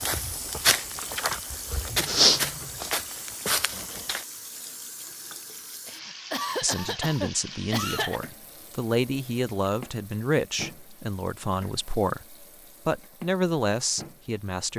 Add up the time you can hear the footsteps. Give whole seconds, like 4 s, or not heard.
4 s.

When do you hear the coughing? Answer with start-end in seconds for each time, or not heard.
5.8-8.2.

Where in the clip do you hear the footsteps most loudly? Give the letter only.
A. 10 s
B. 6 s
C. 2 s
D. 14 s
C.